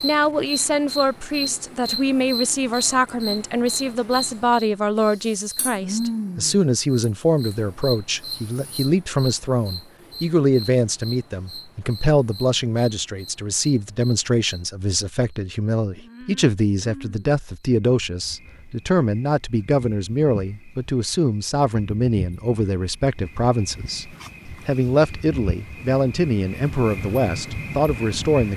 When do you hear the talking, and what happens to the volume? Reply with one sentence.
The talking can be heard from 0.0 to 28.5 s, at a steady volume.